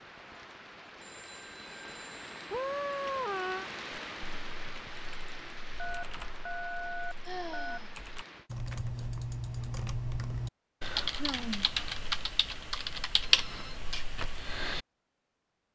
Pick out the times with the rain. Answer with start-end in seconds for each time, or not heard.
0.0-8.5.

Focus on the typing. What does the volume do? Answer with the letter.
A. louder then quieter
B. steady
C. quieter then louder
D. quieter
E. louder
E.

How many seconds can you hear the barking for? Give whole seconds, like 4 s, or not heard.
not heard.